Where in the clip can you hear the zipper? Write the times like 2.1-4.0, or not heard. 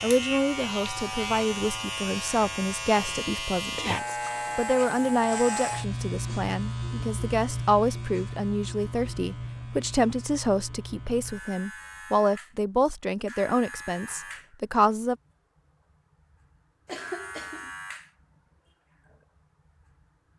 not heard.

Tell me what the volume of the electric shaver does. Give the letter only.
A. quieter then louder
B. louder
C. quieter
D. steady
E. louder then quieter
C.